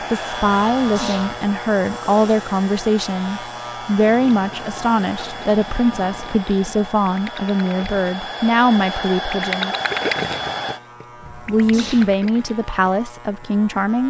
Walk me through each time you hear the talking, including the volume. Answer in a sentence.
You can hear the talking from 0.0 to 9.8 s, at a steady volume; and briefly from 11.3 to 14.0 s.